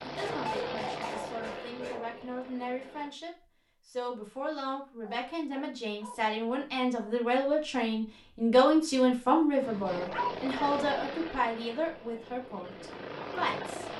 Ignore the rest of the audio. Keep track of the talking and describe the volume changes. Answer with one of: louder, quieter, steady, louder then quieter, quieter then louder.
louder then quieter.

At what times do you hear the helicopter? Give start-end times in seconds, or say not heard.
0.0-3.1, 9.6-13.9.